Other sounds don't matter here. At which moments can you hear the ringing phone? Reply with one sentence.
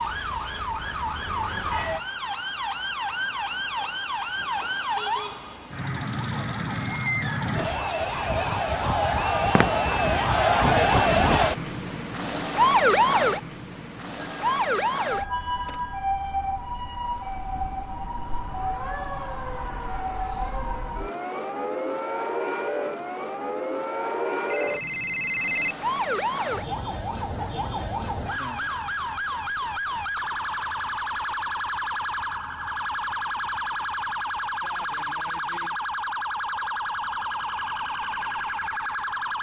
The ringing phone can be heard from 14.2 to 16.1 s and from 24.5 to 25.8 s.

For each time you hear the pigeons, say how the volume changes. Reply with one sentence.
You can't hear the pigeons here.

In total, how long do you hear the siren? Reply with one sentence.
The siren can be heard for 39 seconds in total.